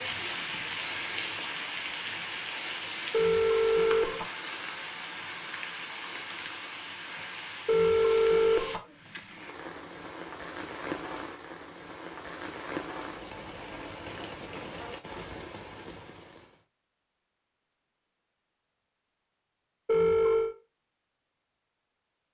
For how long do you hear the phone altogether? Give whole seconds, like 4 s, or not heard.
3 s.